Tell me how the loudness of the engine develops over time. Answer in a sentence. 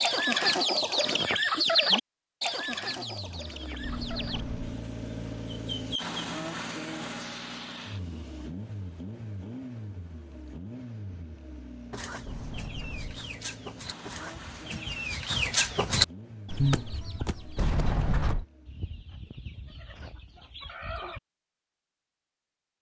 The volume of the engine goes down.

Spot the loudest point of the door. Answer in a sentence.
The volume of the door peaks at 18 seconds.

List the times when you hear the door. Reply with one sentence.
The door can be heard from 3.8 to 4.7 s, from 12.2 to 13.2 s and from 17.6 to 18.4 s.